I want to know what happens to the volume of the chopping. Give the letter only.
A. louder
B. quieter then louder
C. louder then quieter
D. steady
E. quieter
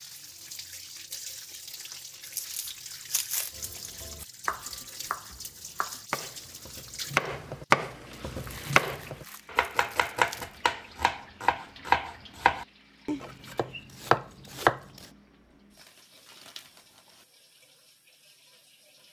A.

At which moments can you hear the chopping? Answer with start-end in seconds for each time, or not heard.
3.5-14.8.